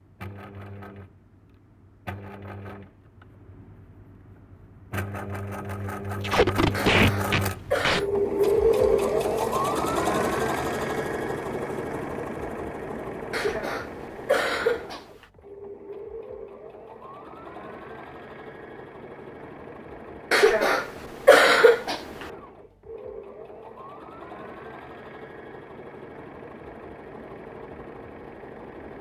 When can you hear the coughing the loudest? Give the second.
21 s.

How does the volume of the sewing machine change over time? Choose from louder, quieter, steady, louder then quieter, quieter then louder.
louder then quieter.